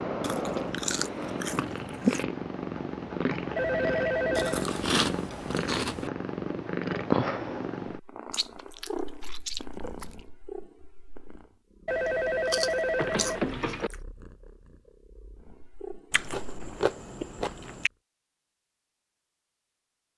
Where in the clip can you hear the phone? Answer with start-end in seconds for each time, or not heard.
3.5-4.7, 11.8-13.9.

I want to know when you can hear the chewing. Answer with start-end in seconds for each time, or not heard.
0.2-2.2, 4.3-6.1, 8.3-10.2, 12.4-13.9, 16.1-17.9.